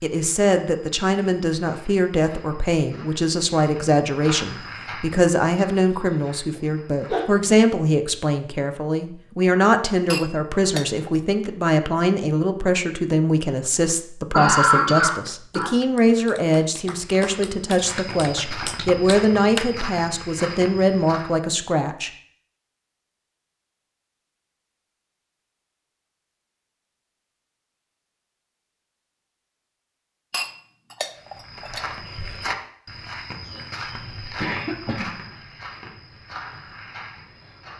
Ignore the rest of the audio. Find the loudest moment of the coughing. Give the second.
15 s.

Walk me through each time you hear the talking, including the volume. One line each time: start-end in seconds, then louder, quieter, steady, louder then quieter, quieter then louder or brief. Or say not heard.
0.0-22.1 steady.